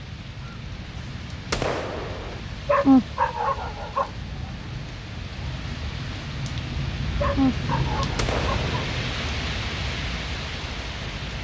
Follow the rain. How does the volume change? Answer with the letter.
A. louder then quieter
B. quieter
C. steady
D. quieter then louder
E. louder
E.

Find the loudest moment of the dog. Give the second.
3 s.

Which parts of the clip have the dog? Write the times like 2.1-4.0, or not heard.
2.6-4.1, 7.2-8.8.